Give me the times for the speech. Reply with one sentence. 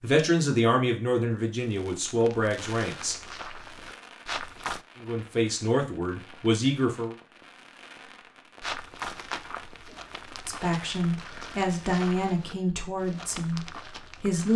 The speech can be heard from 0.0 to 3.1 s, from 5.0 to 7.2 s and from 10.4 to 14.5 s.